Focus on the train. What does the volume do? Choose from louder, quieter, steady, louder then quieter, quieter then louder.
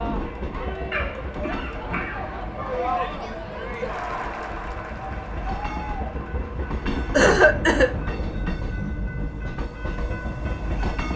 quieter then louder.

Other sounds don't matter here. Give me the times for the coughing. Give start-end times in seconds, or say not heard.
0.9-2.5, 7.1-8.0.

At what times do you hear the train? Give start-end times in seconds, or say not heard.
0.0-11.1.